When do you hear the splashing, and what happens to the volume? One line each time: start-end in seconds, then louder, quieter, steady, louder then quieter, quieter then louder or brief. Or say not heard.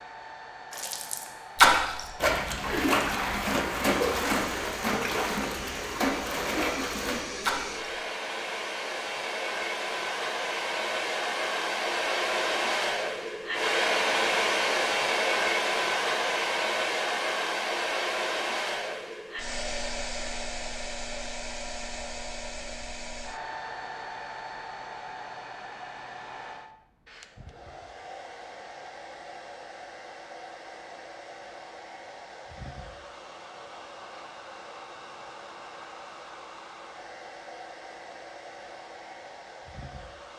0.7-7.9 quieter.